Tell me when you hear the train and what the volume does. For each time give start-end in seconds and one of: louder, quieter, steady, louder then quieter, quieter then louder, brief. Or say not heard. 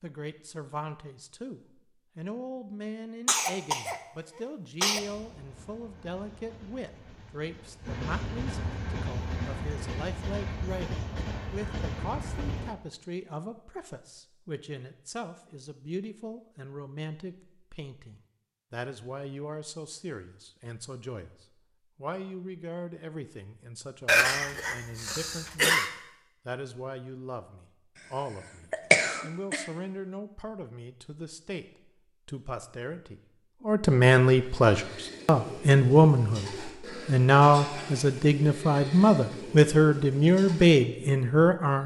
4.9-12.8 louder.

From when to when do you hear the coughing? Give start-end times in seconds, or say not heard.
3.2-5.0, 24.1-25.9, 28.7-29.6.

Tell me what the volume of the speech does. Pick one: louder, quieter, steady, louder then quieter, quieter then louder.
louder.